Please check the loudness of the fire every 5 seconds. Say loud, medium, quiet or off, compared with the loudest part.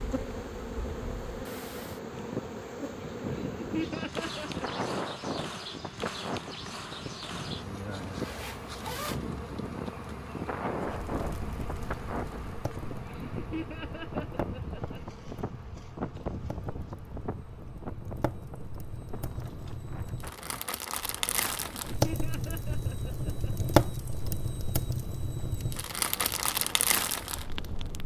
off, off, quiet, quiet, loud, loud.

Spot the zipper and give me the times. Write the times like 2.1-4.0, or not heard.
8.2-9.2.